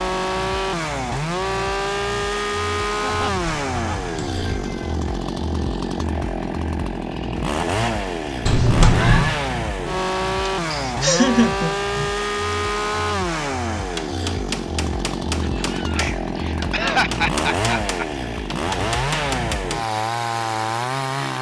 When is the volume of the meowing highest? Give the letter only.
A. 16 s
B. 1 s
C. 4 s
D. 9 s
D.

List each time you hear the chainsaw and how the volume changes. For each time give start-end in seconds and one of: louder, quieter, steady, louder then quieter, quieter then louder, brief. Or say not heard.
0.0-21.3 steady.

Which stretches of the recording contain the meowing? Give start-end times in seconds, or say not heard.
3.1-5.0, 8.4-9.4, 15.4-16.3.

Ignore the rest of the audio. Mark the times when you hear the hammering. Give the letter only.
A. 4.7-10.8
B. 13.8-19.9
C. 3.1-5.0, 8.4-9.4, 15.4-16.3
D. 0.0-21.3
B.